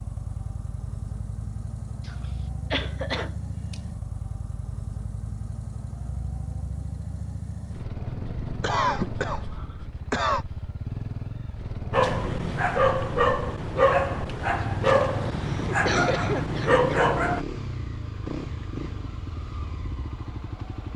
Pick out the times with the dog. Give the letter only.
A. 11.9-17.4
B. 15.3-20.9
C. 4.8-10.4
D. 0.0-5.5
A.